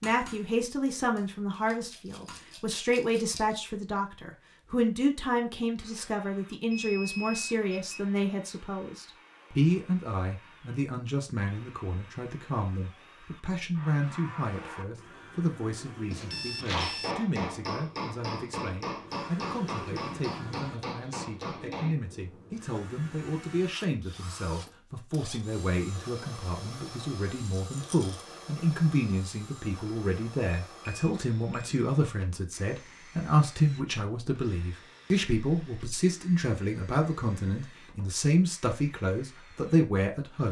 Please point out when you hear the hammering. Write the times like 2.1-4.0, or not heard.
0.0-2.5, 16.7-21.9.